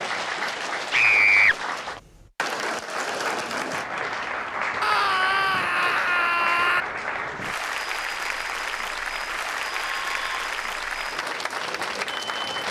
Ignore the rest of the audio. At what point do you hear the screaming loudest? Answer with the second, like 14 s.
1 s.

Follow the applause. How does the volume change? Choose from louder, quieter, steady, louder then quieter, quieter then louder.
steady.